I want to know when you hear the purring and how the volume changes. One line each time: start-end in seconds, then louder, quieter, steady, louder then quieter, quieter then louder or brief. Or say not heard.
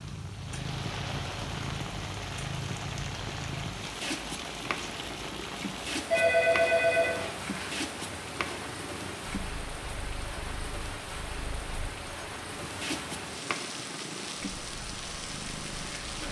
0.0-16.2 quieter then louder.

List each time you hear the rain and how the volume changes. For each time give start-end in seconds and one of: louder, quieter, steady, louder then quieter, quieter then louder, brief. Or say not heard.
0.0-16.2 steady.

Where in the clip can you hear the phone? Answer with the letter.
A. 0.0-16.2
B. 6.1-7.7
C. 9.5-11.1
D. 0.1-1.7
B.